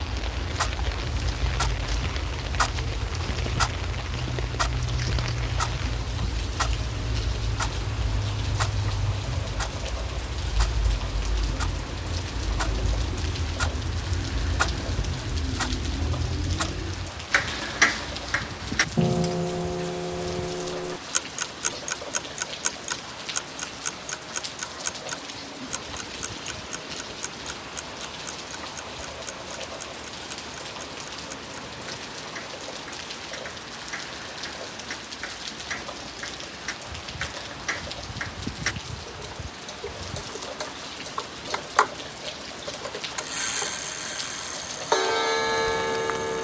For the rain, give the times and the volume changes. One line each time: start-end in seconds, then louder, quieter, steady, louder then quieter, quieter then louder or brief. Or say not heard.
0.0-46.3 steady.